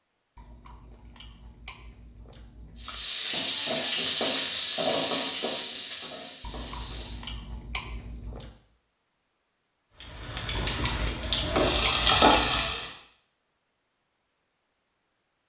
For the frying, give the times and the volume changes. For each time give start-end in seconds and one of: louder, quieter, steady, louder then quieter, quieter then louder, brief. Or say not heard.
2.8-7.3 quieter
9.9-12.9 brief.